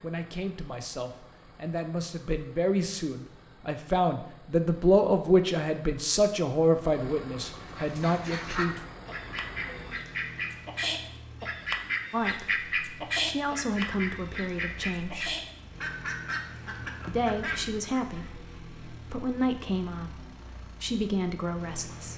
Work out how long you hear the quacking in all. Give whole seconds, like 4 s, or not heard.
11 s.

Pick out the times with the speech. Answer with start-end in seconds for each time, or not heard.
0.0-8.8, 12.1-15.3, 17.1-22.1.